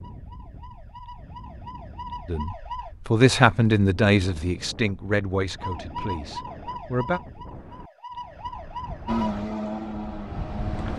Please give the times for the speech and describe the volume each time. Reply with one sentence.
You can hear the speech from 2.2 to 7.2 s, getting quieter.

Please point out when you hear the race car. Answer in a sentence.
You can hear the race car from 9.1 to 10.9 s.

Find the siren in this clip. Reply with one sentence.
The siren can be heard from 0.0 to 2.9 s and from 5.5 to 9.4 s.